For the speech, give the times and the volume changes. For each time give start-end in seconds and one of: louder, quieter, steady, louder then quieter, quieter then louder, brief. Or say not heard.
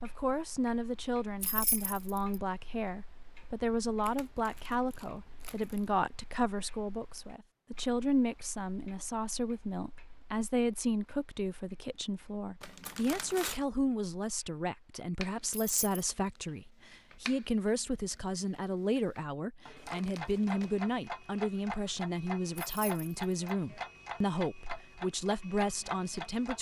0.0-26.5 steady.